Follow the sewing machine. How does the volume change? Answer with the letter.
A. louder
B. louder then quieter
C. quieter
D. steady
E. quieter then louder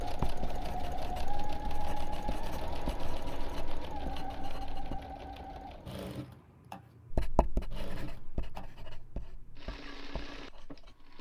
C.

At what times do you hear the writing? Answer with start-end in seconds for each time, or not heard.
0.0-5.0, 7.1-11.1.